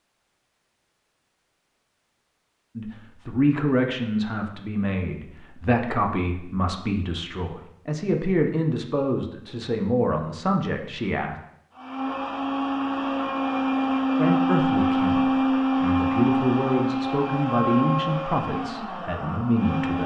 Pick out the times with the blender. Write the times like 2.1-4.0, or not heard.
11.8-20.0.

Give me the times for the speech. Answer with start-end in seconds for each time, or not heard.
2.8-11.3, 14.2-20.0.